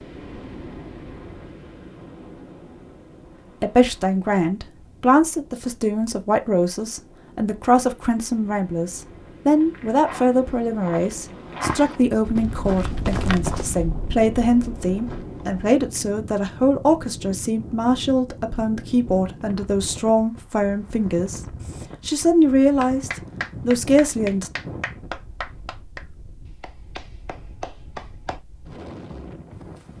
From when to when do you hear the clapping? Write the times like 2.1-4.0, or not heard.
22.8-28.4.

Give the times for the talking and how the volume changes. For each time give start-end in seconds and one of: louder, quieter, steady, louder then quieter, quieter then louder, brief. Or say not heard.
3.6-24.5 steady.